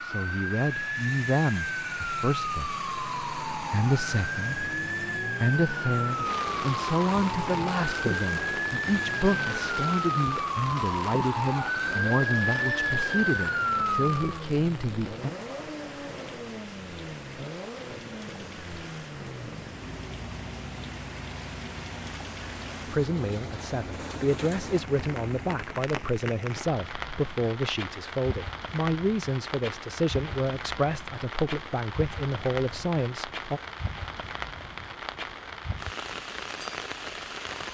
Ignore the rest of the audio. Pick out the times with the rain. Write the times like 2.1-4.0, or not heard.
6.2-37.7.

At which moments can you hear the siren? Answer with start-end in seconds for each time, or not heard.
0.0-14.4.